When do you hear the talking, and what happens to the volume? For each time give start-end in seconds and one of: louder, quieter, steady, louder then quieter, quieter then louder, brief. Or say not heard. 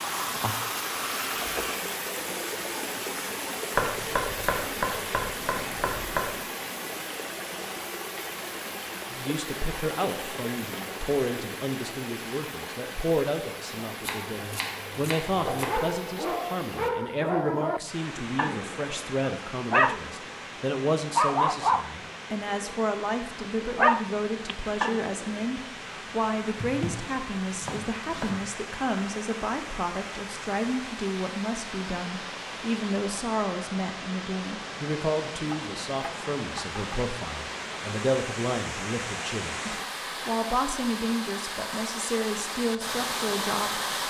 9.1-43.8 steady.